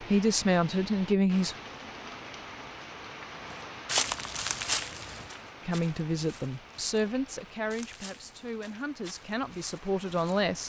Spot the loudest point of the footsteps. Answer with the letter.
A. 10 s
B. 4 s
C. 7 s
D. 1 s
B.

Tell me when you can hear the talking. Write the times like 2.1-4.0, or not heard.
0.0-1.6, 5.7-10.6.